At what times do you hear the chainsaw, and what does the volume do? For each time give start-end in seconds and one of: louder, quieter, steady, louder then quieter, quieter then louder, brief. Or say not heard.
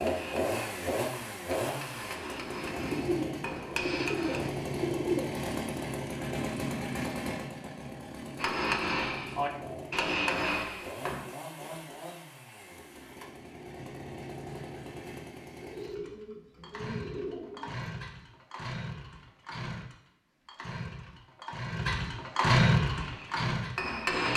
0.0-24.3 quieter then louder.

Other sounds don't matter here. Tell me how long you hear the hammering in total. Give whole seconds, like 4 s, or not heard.
9 s.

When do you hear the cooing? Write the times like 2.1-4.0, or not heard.
2.8-5.4, 15.6-18.0.